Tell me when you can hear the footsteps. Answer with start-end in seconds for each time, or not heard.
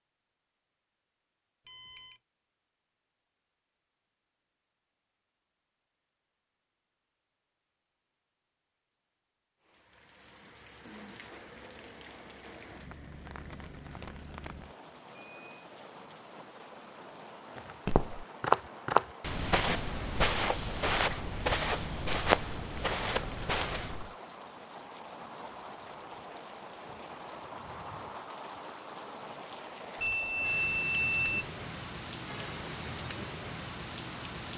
17.6-24.1.